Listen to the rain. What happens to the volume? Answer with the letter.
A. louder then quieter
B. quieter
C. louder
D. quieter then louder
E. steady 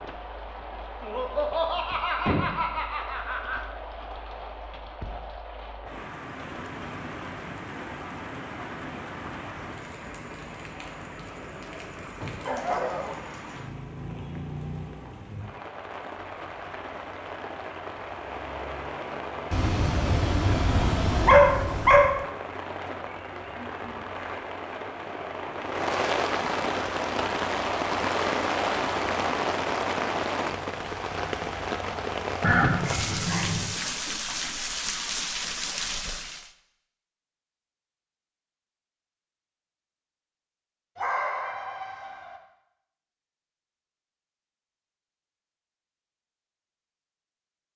C.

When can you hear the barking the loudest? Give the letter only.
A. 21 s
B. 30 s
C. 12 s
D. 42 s
A.